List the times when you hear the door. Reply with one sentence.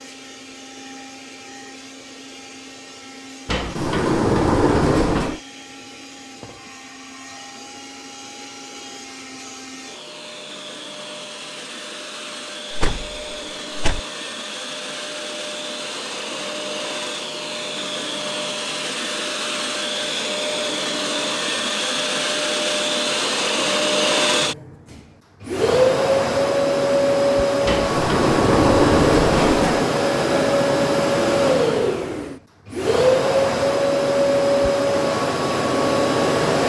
The door can be heard from 3.5 to 5.4 s, from 12.7 to 14.0 s and from 27.6 to 29.9 s.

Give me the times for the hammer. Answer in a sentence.
The hammer can't be heard in this clip.